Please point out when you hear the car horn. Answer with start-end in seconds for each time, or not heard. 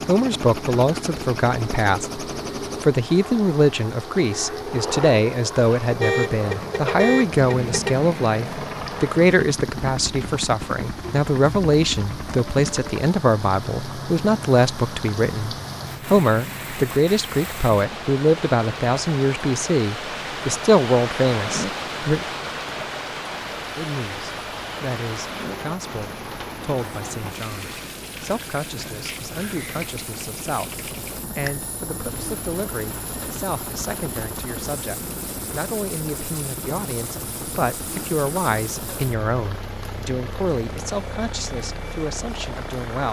5.9-8.1.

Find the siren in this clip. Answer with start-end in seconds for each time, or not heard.
not heard.